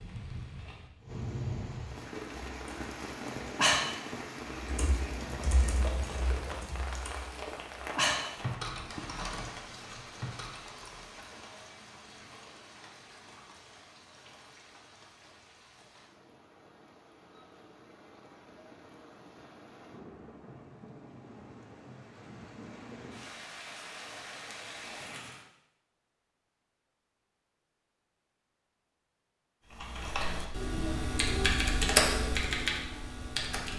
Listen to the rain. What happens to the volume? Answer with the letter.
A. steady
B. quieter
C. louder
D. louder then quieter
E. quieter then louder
E.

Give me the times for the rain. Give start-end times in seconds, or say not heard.
0.0-25.4.